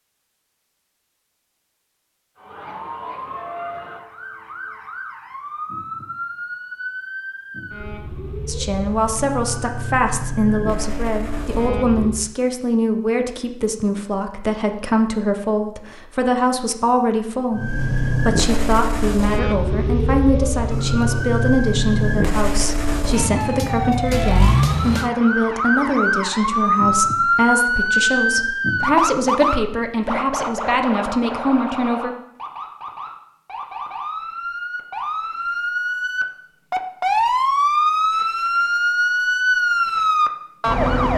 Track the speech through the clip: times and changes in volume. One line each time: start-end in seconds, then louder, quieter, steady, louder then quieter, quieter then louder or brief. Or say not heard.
8.4-32.1 steady.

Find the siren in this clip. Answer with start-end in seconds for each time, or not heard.
2.4-12.3, 17.5-41.1.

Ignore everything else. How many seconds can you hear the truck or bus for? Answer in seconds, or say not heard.
not heard.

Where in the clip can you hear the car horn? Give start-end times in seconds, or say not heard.
not heard.